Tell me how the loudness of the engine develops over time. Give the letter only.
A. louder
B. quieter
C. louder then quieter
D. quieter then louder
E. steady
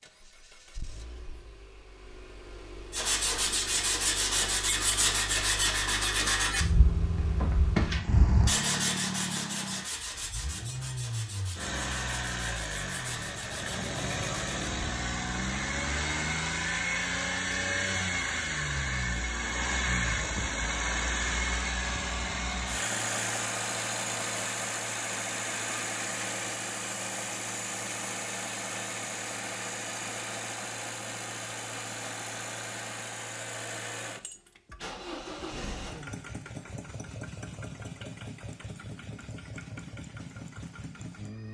C.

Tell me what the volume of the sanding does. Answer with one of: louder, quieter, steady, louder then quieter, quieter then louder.
quieter.